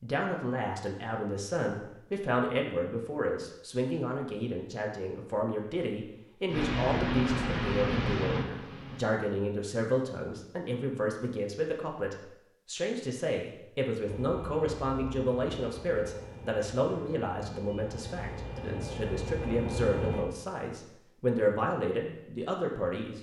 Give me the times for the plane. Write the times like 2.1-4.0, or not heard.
6.5-9.2, 14.0-20.2.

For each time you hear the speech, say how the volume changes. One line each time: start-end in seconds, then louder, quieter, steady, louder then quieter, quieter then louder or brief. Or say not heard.
0.0-23.1 steady.